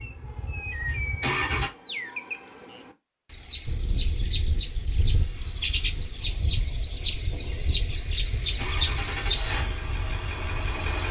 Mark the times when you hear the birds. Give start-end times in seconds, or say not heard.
0.0-9.4.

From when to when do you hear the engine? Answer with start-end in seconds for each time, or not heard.
0.0-1.7, 8.4-11.0.